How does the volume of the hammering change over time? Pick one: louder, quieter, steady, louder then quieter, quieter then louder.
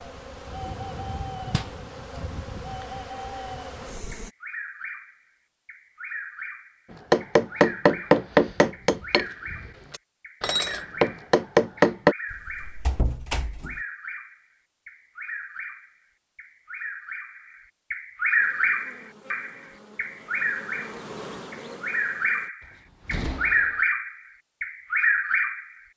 quieter then louder.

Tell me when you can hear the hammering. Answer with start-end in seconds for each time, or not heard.
7.1-12.2.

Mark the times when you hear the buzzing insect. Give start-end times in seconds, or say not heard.
0.0-4.3, 18.4-22.5.